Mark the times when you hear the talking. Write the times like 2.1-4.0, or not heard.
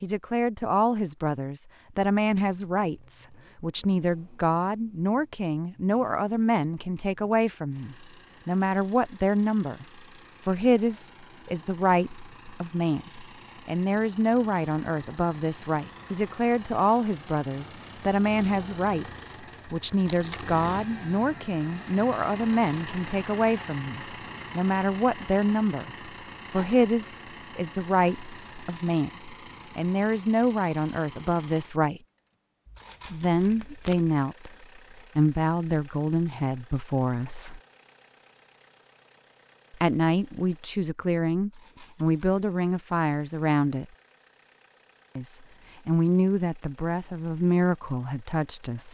0.0-9.8, 10.4-32.0, 33.0-37.6, 39.7-43.9, 45.1-48.9.